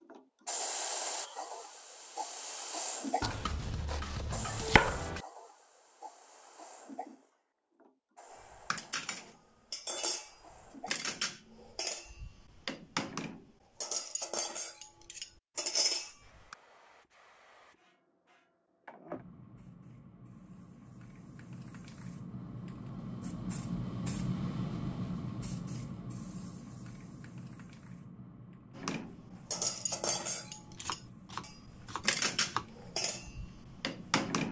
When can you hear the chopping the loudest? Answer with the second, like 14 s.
5 s.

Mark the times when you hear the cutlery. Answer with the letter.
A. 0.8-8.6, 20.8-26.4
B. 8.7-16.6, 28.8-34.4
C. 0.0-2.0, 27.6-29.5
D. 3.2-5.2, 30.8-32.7
B.